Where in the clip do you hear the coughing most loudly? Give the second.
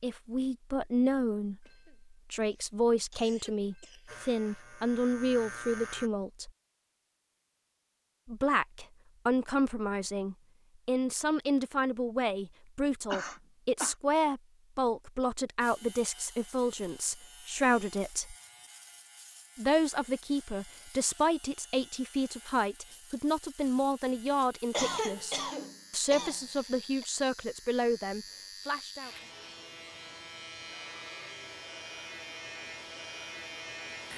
25 s.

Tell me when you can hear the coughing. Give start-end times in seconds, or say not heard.
1.6-4.3, 13.1-13.9, 24.7-27.1.